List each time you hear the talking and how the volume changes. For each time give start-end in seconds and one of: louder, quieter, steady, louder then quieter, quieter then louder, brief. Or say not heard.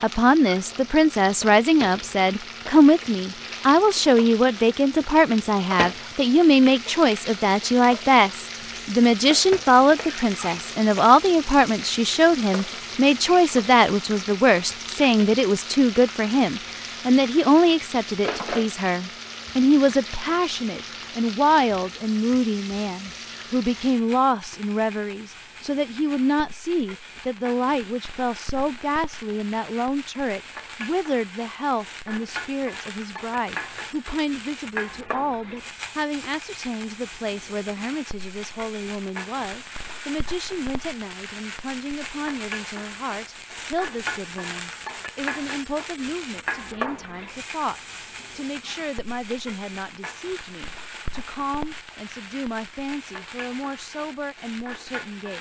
0.0-55.3 quieter.